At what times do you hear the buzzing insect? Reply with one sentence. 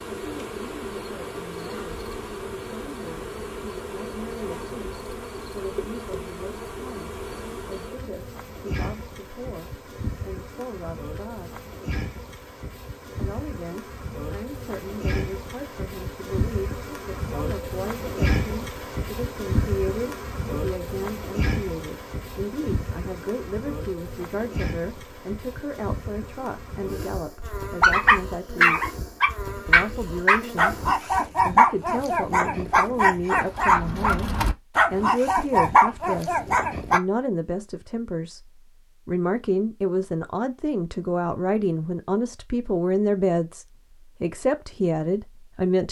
The buzzing insect can be heard from 0.0 to 31.2 s.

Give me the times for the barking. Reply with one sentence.
The barking can be heard from 27.8 to 37.0 s.